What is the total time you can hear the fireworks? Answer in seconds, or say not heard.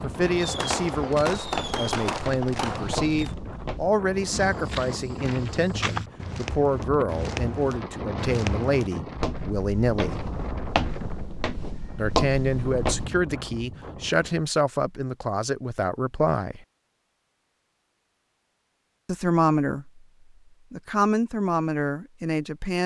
3 s.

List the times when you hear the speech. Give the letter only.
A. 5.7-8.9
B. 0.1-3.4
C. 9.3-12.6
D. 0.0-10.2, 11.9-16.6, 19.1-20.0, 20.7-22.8
D.